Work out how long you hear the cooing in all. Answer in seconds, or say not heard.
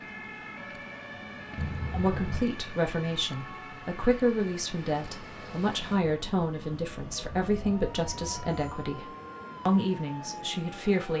not heard.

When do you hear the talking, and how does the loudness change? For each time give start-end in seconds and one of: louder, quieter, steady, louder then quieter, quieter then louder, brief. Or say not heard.
1.9-11.1 steady.